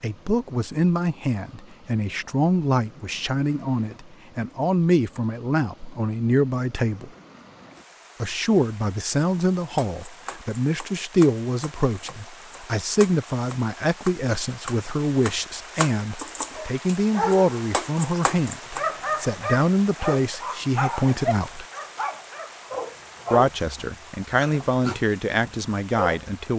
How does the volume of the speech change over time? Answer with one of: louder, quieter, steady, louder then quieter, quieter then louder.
steady.